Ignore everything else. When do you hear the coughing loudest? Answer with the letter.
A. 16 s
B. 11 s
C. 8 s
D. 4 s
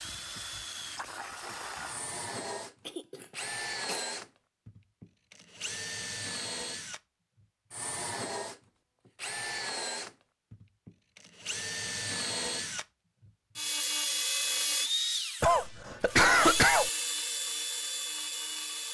A.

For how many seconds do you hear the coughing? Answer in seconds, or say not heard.
3 s.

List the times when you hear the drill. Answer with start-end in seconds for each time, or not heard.
0.0-18.8.